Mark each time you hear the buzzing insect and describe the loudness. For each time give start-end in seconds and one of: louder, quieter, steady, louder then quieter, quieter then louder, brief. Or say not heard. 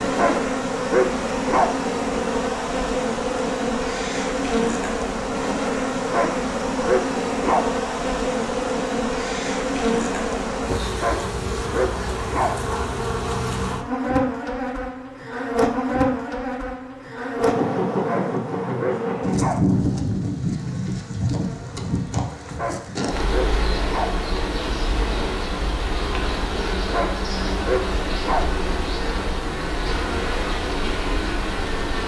0.0-32.0 steady.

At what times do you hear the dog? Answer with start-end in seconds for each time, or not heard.
0.1-1.7, 6.1-7.7, 11.0-12.6, 18.1-19.6, 22.6-24.1, 26.9-28.4.